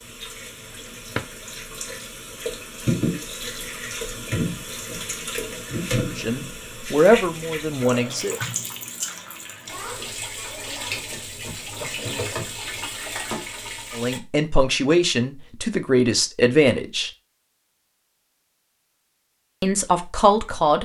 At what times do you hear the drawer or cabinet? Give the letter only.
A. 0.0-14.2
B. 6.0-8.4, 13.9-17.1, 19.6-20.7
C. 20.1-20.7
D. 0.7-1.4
D.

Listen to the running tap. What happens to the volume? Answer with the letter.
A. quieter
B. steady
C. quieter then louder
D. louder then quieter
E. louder
B.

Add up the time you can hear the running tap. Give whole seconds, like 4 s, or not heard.
14 s.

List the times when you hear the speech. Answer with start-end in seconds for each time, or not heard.
6.0-8.4, 13.9-17.1, 19.6-20.7.